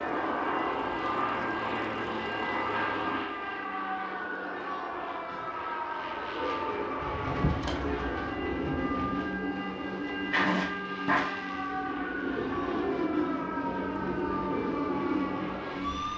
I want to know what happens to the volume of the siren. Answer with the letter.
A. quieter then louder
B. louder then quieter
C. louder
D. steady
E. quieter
D.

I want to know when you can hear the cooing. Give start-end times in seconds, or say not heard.
6.0-15.9.